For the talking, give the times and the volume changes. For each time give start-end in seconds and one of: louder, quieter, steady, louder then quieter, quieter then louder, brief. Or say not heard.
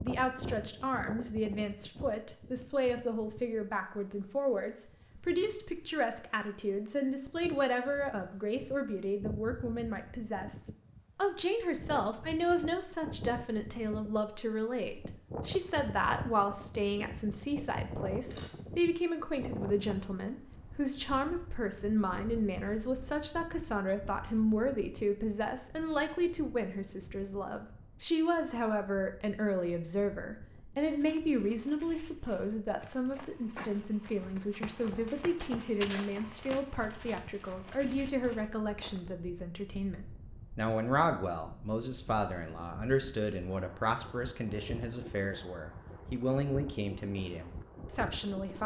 0.0-48.6 steady.